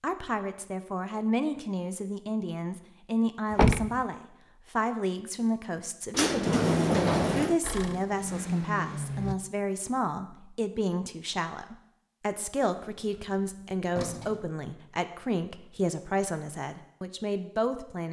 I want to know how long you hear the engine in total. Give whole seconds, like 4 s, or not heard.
2 s.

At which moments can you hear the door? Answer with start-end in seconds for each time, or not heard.
3.5-4.0, 6.1-7.6, 12.9-14.5.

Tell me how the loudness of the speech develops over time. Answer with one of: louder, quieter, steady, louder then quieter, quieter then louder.
steady.